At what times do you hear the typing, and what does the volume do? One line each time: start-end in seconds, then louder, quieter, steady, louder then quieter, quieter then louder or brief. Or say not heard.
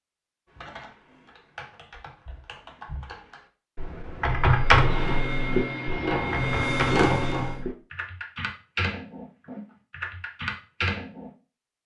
0.5-11.3 louder then quieter.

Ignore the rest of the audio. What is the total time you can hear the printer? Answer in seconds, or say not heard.
3 s.